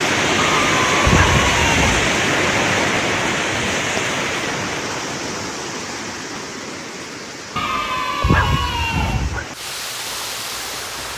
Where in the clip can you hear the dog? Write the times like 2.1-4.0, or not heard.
0.3-2.1, 7.5-9.4.